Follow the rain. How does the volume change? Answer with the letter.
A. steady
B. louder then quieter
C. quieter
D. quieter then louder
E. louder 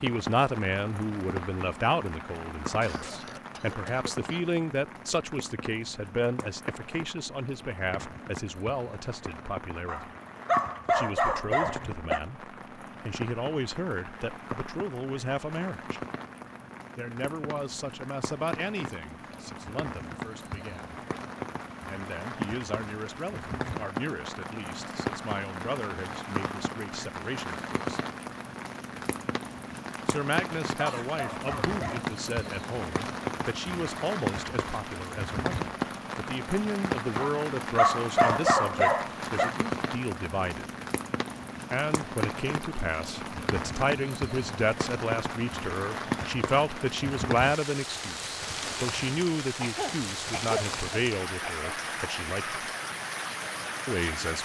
E.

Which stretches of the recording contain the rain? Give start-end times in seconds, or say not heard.
0.0-54.4.